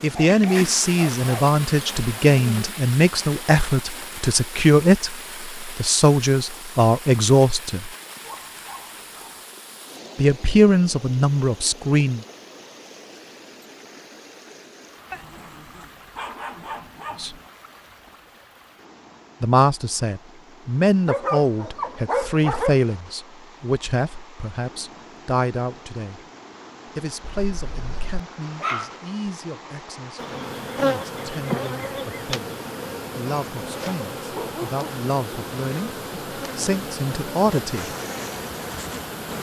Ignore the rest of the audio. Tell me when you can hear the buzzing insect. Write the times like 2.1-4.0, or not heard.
0.0-2.7, 30.1-39.3.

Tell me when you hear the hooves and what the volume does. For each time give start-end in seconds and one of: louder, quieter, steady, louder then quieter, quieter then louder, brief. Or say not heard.
not heard.